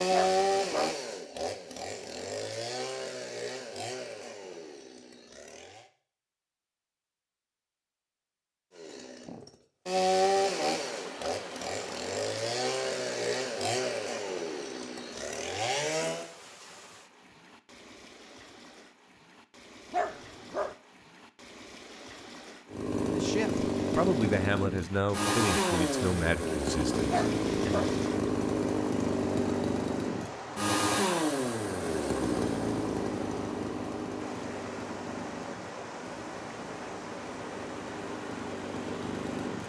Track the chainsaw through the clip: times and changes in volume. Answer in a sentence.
The chainsaw can be heard from 0.0 to 5.9 s, getting quieter; from 8.8 to 16.3 s, getting quieter; and from 22.7 to 39.6 s, getting quieter.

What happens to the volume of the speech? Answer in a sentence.
The loudness of the speech goes down.